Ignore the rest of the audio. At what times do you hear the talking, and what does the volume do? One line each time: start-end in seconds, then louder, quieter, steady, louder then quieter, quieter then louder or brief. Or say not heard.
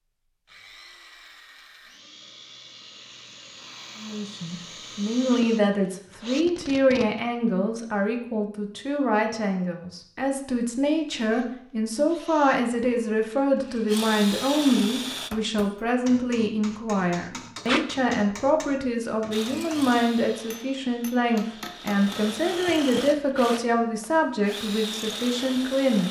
4.0-26.0 steady.